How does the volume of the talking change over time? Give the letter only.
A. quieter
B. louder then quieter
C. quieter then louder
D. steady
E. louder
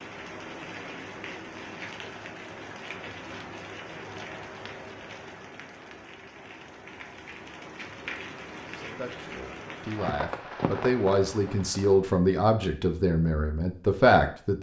E.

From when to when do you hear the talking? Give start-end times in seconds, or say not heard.
8.7-14.5.